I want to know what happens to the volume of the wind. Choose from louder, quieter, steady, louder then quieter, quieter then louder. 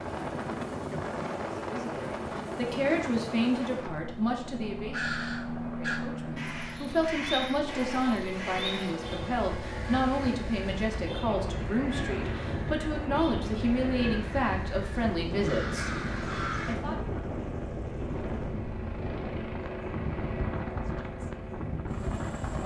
quieter then louder.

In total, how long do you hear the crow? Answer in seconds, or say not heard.
12 s.